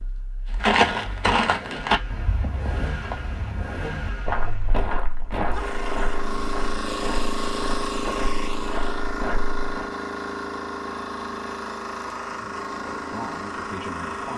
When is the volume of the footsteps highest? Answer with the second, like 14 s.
1 s.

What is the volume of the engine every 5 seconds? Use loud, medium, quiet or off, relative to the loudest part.
medium, loud, loud.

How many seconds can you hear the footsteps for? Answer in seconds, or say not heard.
9 s.